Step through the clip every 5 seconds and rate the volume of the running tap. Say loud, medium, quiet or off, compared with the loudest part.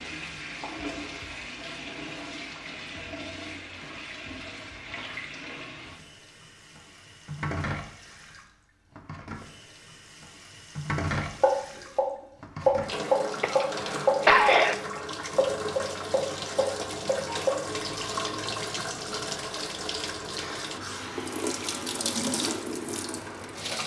medium, medium, loud, loud, loud.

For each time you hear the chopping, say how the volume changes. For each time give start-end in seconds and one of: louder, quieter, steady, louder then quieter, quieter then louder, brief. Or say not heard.
11.4-17.6 quieter.